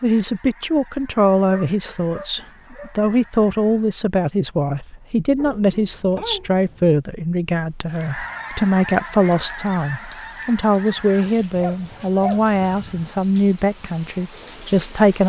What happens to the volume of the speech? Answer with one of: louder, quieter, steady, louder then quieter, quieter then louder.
steady.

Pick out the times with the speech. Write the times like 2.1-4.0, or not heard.
0.0-15.2.